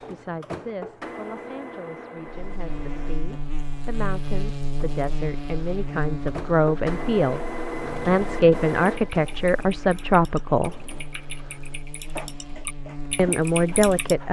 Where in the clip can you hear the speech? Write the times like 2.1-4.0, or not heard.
0.1-7.4, 8.1-10.8, 13.2-14.2.